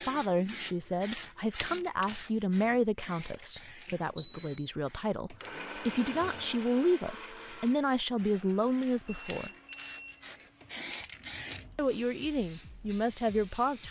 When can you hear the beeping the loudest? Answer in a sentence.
The loudest moment of the beeping is at 4 seconds.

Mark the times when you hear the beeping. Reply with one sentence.
The beeping can be heard from 3.9 to 4.5 s and from 9.1 to 10.5 s.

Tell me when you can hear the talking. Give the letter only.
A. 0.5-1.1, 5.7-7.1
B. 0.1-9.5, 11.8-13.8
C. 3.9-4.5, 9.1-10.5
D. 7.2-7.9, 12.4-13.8
B.